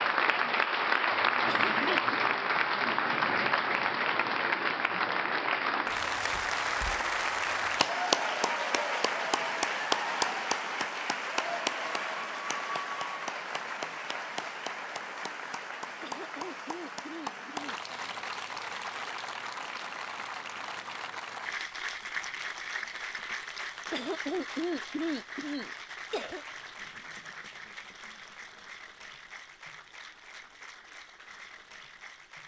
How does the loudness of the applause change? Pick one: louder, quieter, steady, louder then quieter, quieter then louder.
quieter.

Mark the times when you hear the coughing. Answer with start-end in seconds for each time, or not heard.
1.4-2.2, 16.0-17.9, 23.9-26.4.